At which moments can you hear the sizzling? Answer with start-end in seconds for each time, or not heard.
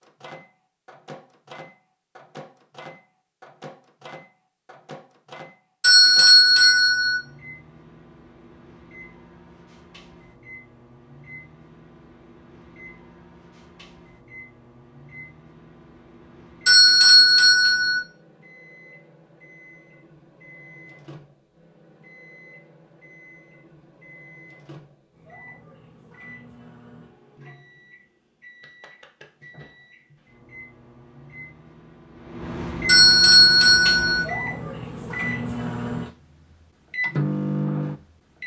not heard.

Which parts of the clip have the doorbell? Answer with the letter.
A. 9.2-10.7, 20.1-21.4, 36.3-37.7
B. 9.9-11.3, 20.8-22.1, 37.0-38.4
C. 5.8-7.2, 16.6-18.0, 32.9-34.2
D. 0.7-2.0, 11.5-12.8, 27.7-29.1
C.